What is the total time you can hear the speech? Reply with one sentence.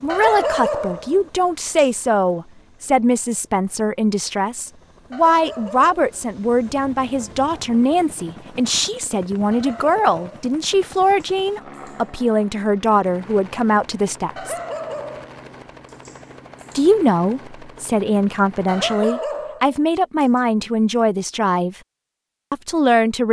The speech can be heard for 20 seconds in total.